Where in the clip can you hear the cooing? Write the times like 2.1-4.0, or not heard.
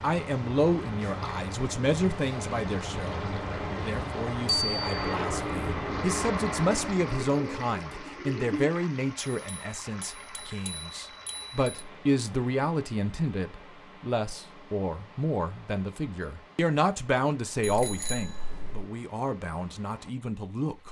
7.0-8.7.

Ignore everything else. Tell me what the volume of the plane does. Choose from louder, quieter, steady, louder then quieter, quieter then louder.
louder.